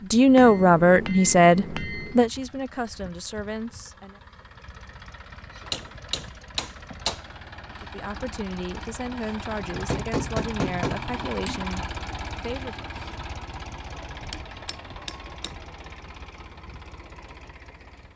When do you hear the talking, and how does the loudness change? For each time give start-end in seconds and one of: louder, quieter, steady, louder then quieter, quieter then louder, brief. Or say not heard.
0.0-4.2 quieter
7.8-12.8 steady.